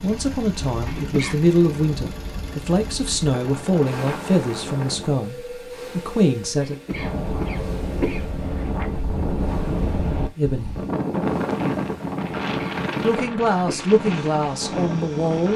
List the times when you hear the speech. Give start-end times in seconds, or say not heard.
0.0-6.8, 10.3-10.8, 13.0-15.5.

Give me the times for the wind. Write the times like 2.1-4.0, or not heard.
0.1-15.5.